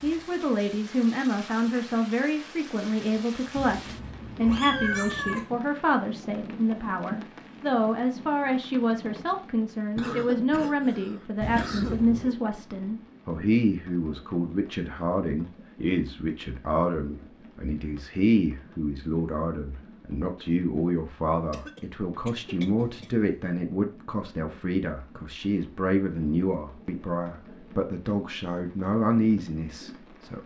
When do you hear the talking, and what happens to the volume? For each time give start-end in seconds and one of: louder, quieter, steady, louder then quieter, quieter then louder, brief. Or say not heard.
0.0-30.4 steady.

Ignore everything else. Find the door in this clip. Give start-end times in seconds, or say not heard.
not heard.